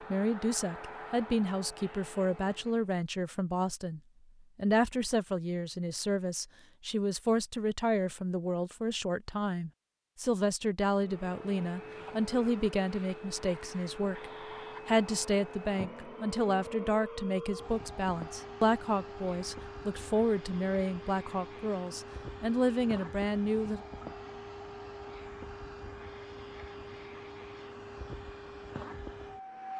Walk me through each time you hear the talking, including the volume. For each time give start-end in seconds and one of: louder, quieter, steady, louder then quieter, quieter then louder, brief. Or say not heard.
0.1-23.8 steady.